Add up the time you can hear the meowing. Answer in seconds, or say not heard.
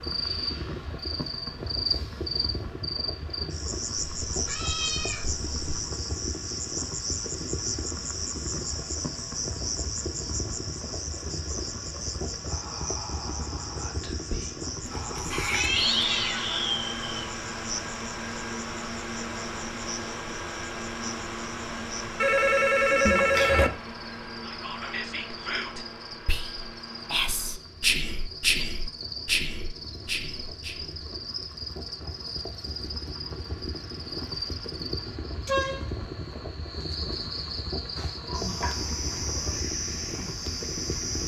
5 s.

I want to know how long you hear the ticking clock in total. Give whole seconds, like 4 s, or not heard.
not heard.